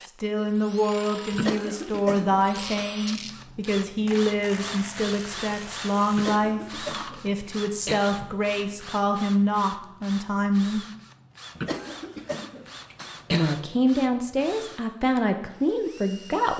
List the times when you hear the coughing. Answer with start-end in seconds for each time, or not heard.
1.3-2.9, 6.1-8.2, 11.6-13.6.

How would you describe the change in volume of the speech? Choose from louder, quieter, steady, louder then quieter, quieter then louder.
steady.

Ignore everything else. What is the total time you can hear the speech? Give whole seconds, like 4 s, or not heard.
14 s.